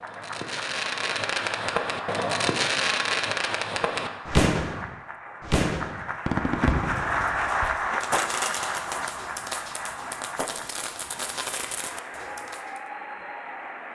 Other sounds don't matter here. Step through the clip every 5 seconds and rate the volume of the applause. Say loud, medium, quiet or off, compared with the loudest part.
medium, loud, medium.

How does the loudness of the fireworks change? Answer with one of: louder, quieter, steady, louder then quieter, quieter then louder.
quieter.